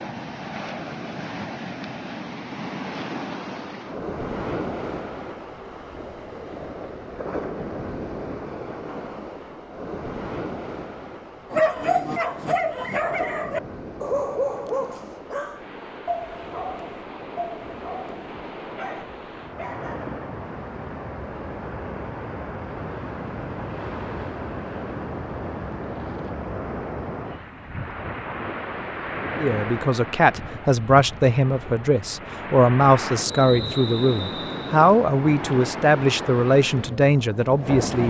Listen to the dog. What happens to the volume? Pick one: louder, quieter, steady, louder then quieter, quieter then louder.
quieter.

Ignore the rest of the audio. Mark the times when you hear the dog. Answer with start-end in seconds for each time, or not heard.
11.5-20.1.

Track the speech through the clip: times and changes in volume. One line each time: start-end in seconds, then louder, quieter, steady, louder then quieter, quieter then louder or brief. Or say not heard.
29.4-38.0 steady.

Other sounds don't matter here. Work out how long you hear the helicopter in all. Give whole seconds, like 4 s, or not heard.
not heard.